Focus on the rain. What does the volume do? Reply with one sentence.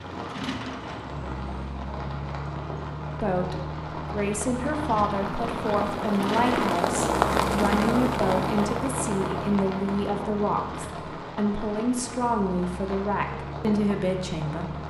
The loudness of the rain goes up, then down.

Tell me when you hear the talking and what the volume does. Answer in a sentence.
The talking can be heard from 3.2 to 14.8 s, at a steady volume.